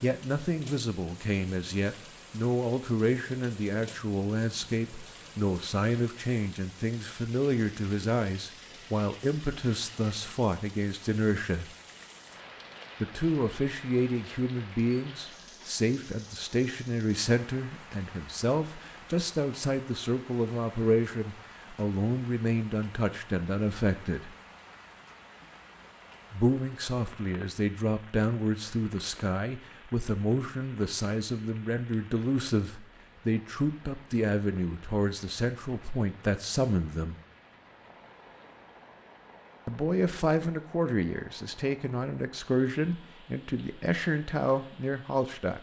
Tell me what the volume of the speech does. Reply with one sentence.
The loudness of the speech stays about the same.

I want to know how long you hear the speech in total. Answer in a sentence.
The speech can be heard for 40 seconds in total.